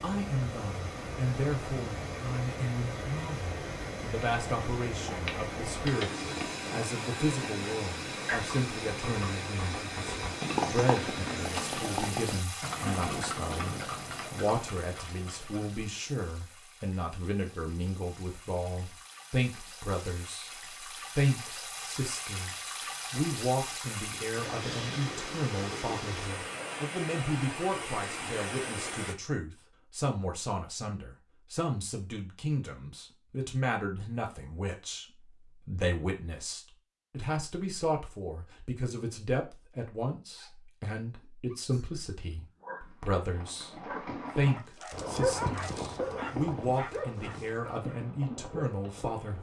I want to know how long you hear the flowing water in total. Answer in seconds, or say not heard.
29 s.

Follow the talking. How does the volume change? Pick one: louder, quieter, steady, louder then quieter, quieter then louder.
steady.